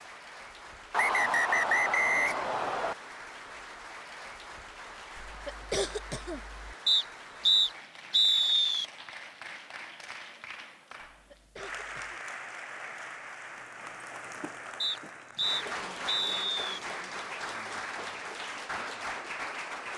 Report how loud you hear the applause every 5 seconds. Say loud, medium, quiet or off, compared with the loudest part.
medium, medium, medium, loud.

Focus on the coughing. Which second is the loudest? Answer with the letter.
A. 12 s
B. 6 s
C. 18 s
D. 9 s
B.